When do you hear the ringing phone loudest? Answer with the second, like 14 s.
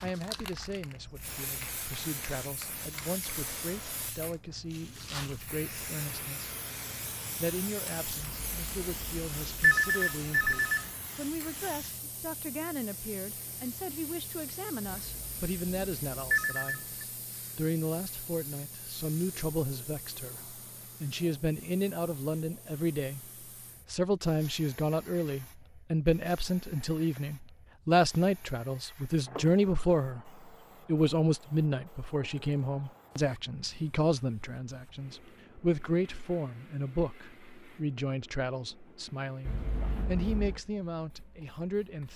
10 s.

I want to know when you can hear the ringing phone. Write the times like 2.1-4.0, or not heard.
8.2-10.8, 14.9-17.1, 39.5-40.6.